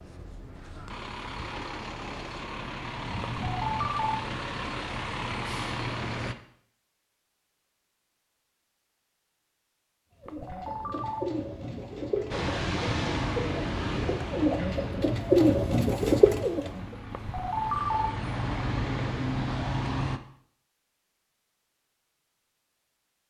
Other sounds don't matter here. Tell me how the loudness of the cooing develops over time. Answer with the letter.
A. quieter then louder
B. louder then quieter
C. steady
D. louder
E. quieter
D.